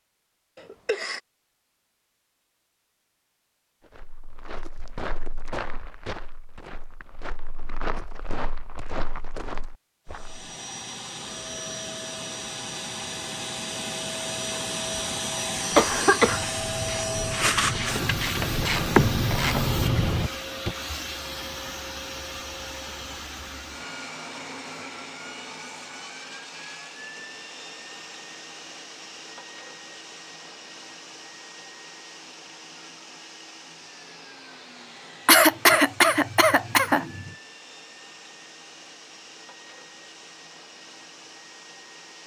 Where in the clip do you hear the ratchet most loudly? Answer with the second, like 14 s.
19 s.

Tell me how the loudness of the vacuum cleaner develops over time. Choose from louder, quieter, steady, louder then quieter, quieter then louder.
quieter.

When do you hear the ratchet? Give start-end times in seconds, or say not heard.
15.8-20.8.